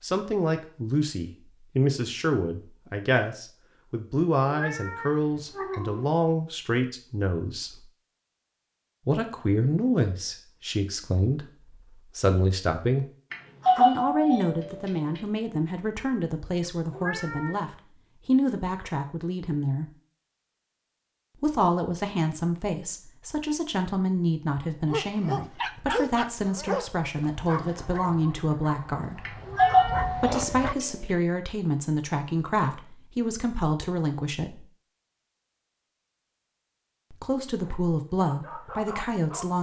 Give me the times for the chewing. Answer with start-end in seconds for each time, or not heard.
not heard.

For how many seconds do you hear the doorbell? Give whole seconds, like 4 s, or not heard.
3 s.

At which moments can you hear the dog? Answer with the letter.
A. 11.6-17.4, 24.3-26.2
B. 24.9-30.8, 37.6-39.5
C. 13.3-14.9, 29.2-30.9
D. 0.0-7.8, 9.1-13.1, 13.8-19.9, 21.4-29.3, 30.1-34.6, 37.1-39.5
B.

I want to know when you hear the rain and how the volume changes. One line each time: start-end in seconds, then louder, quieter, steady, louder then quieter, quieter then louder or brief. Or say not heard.
not heard.